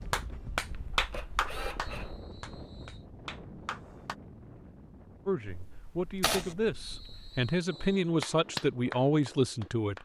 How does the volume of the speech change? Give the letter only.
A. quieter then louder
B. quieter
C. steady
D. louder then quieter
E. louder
E.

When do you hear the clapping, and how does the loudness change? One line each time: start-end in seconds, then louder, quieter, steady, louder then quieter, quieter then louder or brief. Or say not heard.
0.0-4.2 quieter then louder
8.2-10.0 brief.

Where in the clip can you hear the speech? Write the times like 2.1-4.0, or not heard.
5.2-9.9.